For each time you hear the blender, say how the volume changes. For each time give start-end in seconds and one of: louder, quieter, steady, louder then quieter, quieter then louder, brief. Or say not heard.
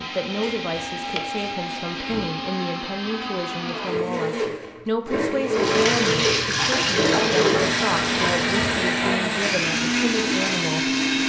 0.0-11.2 louder.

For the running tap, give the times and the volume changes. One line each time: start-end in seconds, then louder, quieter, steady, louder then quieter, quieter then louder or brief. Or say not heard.
5.5-11.2 quieter.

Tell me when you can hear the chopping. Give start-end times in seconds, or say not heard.
0.3-2.4.